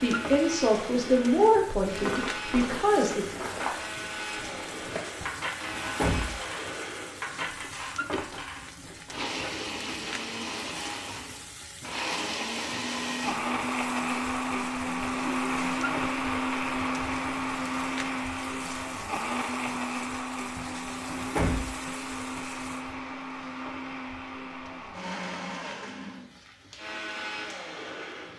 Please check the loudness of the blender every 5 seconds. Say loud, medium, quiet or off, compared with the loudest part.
medium, medium, loud, loud, medium, medium.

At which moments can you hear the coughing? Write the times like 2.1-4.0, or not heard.
not heard.